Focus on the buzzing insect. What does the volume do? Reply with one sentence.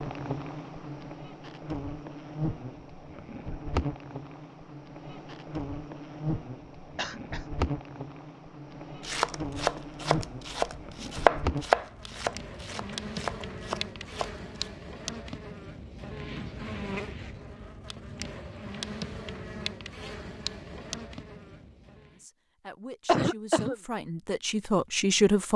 The loudness of the buzzing insect stays about the same.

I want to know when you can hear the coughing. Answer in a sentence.
The coughing can be heard from 7.0 to 7.5 s and from 23.1 to 23.8 s.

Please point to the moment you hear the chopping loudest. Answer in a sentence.
The loudest moment of the chopping is at 11 seconds.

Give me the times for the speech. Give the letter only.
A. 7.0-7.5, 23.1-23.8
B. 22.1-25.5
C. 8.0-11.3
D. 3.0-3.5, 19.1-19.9
B.